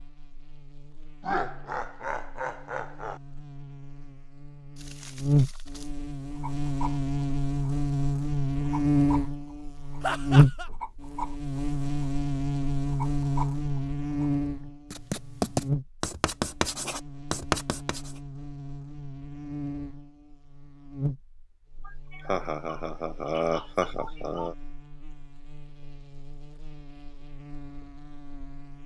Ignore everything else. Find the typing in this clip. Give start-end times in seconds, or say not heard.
not heard.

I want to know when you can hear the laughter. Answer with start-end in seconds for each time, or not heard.
1.2-3.2, 10.0-10.7, 21.9-24.6.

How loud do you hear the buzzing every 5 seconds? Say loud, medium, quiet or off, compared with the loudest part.
quiet, loud, loud, medium, quiet, quiet.